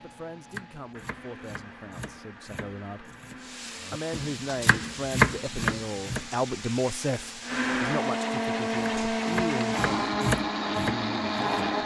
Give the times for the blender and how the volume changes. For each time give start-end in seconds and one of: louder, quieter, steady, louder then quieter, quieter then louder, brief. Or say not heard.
0.0-11.8 louder.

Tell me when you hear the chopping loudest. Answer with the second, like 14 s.
5 s.